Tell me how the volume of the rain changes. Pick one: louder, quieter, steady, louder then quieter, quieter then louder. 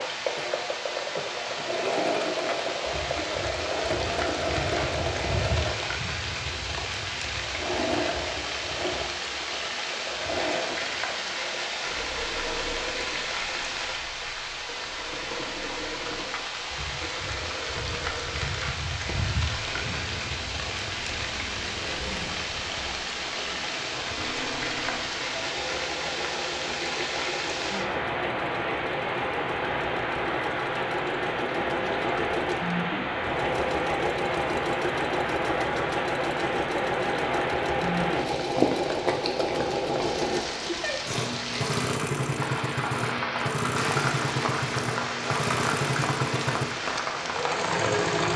steady.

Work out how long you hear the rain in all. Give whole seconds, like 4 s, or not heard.
48 s.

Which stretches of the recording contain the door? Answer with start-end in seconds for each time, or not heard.
not heard.